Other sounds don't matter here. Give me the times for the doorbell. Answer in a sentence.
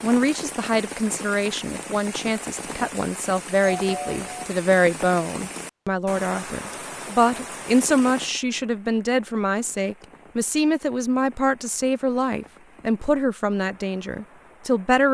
The doorbell can be heard from 3.6 to 4.5 s.